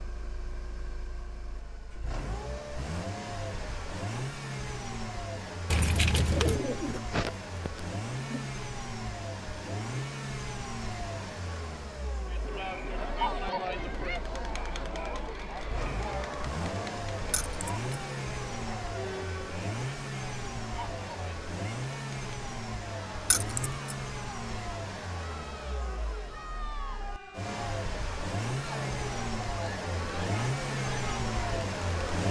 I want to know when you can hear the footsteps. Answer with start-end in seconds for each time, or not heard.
not heard.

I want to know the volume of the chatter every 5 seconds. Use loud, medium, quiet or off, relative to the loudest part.
off, off, loud, medium, medium, medium, medium.